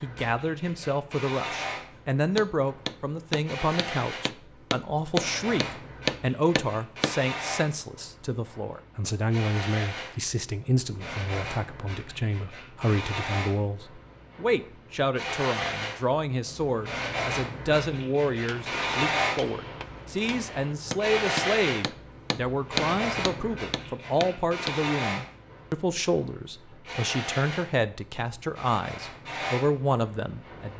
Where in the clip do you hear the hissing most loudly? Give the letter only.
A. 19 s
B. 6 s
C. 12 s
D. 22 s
A.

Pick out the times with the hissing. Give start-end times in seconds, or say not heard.
0.0-30.7.